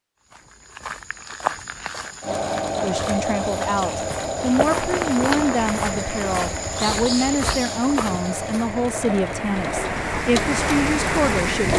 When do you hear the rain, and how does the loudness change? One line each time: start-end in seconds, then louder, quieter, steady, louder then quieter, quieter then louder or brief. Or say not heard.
4.3-11.7 quieter then louder.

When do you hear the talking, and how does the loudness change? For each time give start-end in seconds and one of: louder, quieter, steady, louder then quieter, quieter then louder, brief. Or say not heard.
2.8-11.7 steady.